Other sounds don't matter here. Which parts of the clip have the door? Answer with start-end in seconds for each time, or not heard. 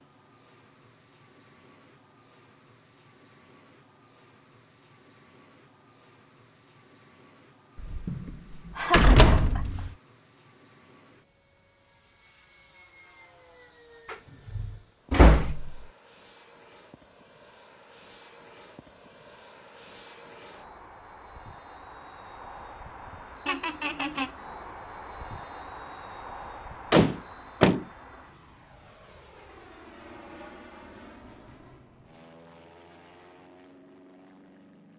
7.8-9.9, 14.1-15.8, 26.9-27.9.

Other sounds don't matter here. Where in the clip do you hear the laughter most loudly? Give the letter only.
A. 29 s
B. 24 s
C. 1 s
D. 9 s
D.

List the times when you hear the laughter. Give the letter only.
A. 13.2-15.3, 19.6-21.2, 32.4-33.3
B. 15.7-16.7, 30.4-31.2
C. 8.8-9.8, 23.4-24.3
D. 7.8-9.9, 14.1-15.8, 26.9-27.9
C.